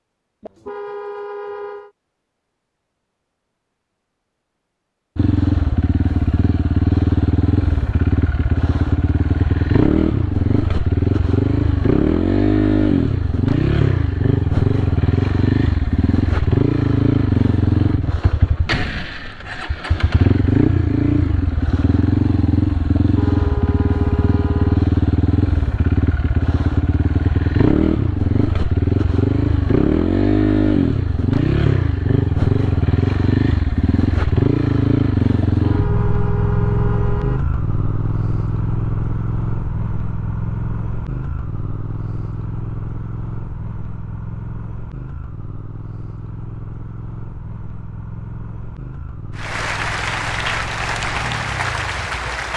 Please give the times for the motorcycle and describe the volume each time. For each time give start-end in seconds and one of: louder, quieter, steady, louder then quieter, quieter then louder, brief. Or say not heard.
5.2-52.5 quieter.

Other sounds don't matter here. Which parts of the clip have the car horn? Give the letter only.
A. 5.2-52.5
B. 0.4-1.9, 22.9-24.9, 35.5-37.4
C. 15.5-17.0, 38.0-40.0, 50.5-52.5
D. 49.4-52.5
B.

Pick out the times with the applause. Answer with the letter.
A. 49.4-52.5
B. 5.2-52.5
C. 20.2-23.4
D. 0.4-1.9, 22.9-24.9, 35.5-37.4
A.